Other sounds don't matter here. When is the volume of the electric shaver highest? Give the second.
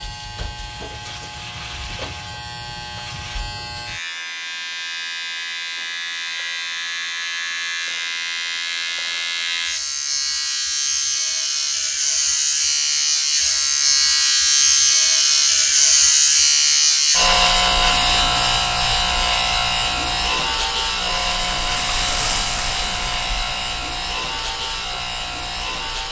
16 s.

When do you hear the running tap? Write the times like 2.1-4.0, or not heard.
20.8-26.0.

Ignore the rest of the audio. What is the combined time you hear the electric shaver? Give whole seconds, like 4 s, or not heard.
26 s.